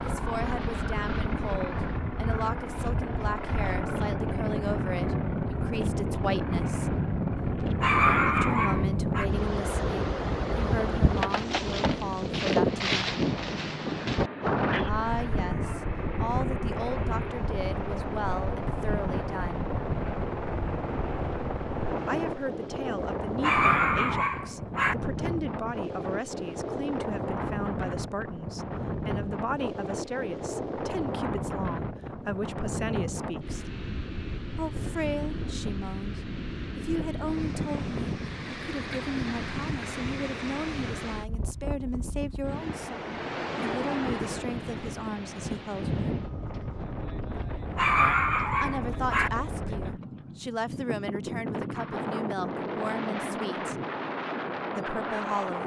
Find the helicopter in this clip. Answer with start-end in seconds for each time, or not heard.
0.0-22.4.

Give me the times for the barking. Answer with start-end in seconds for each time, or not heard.
7.6-9.2, 23.2-24.9, 47.5-49.3.